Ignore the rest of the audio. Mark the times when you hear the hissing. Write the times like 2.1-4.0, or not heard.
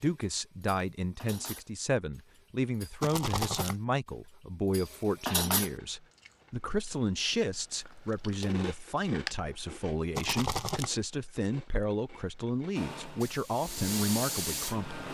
12.8-15.1.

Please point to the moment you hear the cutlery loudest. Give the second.
5 s.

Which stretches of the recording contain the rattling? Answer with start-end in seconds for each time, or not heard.
3.0-3.8, 10.2-10.9.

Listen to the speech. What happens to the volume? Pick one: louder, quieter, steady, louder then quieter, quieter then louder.
steady.